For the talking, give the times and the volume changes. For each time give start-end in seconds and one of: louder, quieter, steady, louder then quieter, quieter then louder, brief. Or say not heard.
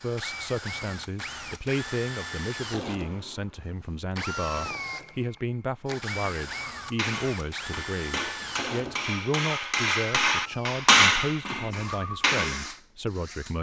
0.0-13.5 steady.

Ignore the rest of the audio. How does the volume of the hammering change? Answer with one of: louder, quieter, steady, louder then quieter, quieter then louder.
louder then quieter.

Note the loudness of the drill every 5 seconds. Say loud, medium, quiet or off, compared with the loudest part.
loud, loud, medium.